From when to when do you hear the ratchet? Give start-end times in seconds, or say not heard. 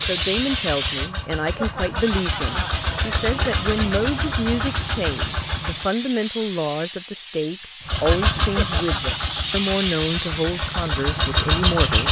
not heard.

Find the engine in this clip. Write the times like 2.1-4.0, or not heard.
0.0-5.9, 7.8-12.0.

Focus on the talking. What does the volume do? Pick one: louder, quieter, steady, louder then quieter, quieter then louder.
steady.